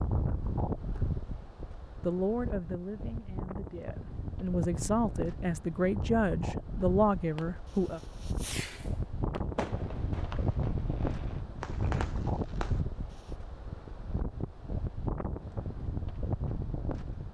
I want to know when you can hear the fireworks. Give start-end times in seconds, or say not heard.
7.3-13.3.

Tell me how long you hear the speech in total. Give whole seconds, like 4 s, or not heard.
6 s.